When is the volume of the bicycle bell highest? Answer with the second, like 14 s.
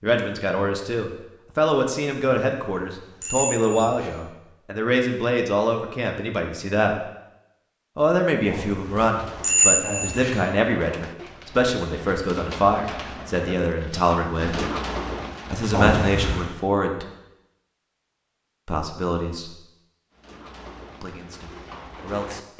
10 s.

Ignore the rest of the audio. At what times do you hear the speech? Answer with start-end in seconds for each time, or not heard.
0.0-7.0, 8.0-14.6, 15.5-17.1, 18.6-19.6, 21.0-22.4.